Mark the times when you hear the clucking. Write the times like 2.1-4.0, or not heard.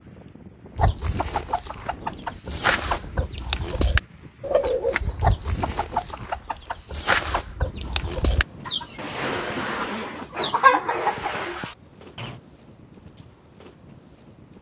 0.8-12.3.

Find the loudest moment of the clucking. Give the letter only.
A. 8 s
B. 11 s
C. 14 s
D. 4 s
B.